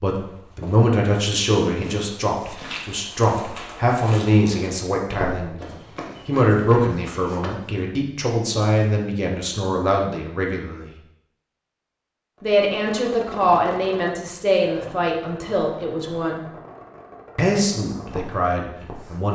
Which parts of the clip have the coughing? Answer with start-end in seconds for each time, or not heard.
not heard.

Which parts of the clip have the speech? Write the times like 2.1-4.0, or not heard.
0.0-5.6, 6.2-10.9, 12.4-16.4, 17.4-19.3.